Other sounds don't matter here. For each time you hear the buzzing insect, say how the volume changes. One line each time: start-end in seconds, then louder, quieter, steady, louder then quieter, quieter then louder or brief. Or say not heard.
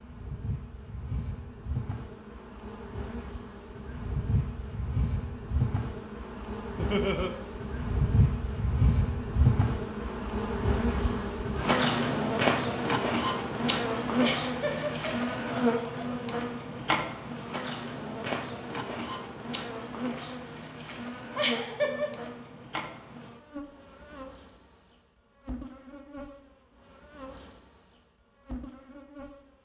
0.0-29.6 louder then quieter.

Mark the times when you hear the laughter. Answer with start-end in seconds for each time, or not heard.
6.8-7.3, 14.2-16.1, 21.4-22.2.